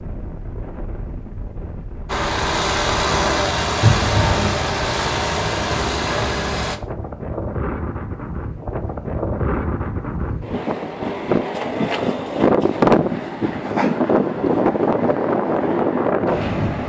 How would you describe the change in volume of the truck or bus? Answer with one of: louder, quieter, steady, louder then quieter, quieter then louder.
steady.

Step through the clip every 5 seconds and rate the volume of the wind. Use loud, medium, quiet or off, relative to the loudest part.
quiet, medium, loud, loud.